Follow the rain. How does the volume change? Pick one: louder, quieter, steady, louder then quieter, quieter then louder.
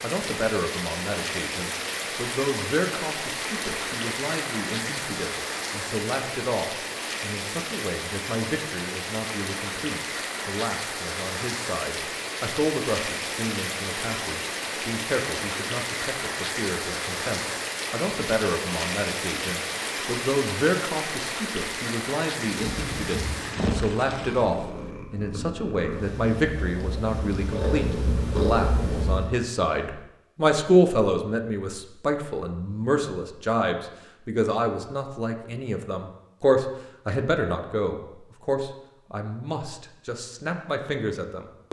steady.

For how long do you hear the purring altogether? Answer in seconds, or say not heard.
7 s.